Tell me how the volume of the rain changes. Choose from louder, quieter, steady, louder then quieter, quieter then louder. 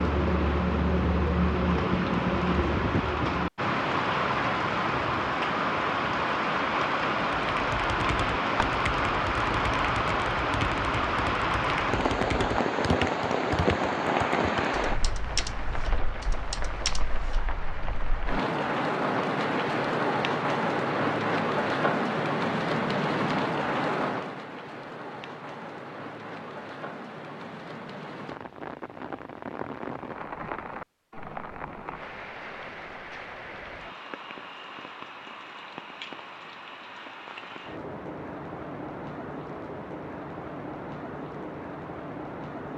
quieter.